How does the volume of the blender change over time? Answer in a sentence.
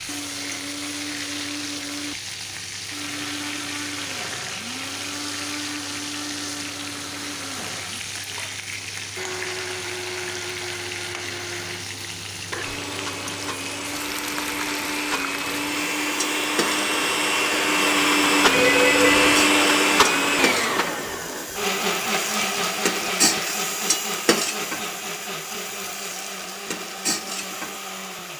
The volume of the blender goes up, then down.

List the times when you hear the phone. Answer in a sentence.
The phone can be heard from 18.5 to 19.4 s.